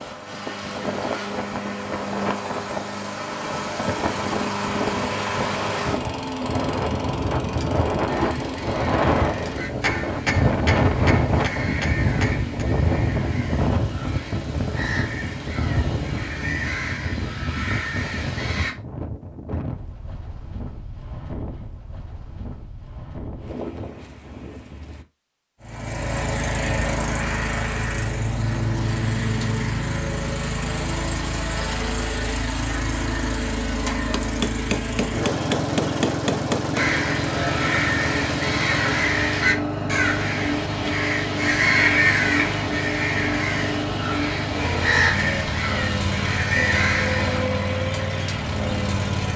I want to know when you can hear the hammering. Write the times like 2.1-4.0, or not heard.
9.8-12.7, 34.1-36.9.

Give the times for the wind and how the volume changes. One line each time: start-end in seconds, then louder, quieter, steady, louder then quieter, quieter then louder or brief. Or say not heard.
0.0-25.1 louder then quieter.